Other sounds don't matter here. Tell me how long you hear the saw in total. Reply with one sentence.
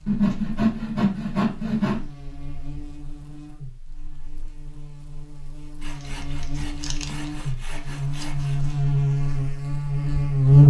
You can hear the saw for 5 seconds altogether.